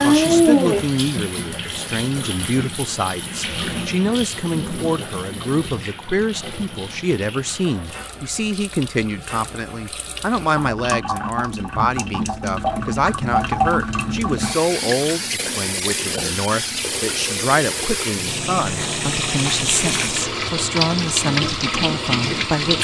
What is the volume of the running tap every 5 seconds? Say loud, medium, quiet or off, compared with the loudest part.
loud, quiet, loud, loud, loud.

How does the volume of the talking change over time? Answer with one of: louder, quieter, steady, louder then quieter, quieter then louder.
steady.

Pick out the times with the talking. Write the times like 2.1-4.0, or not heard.
0.0-22.7.